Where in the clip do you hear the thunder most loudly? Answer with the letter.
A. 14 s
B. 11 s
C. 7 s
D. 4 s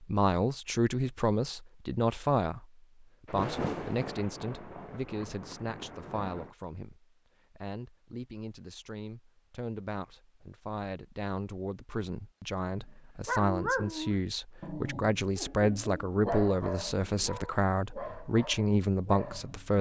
D.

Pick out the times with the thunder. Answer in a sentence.
You can hear the thunder from 3.2 to 6.5 s.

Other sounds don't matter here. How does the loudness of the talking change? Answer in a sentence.
The volume of the talking goes down, then up.